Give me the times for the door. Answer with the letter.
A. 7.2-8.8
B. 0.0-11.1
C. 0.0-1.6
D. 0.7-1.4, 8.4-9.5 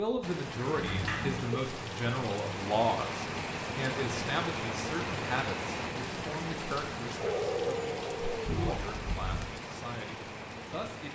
D.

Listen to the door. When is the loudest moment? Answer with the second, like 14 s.
1 s.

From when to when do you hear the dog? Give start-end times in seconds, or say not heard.
7.2-8.8.